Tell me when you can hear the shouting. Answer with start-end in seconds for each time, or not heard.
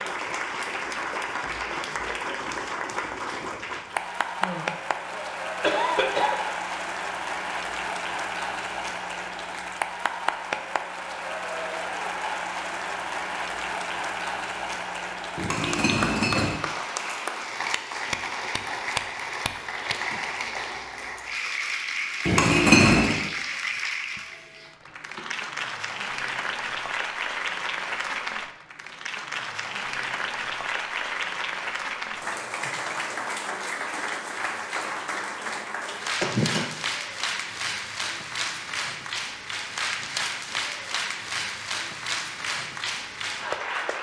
not heard.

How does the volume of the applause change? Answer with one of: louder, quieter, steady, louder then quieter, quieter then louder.
steady.